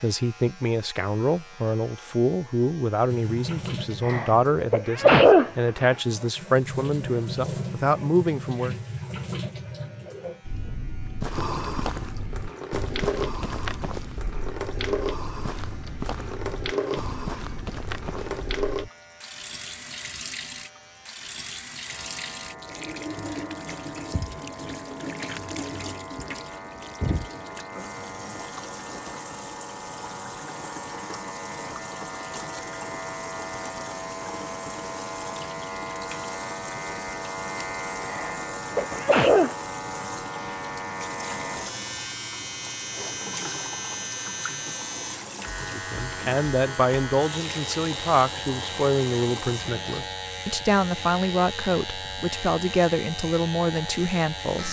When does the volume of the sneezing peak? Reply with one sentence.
The loudest moment of the sneezing is at 5 seconds.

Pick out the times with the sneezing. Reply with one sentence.
The sneezing can be heard from 4.0 to 5.8 s and from 38.0 to 39.5 s.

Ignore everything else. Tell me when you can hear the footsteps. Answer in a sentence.
You can hear the footsteps from 10.4 to 18.9 s.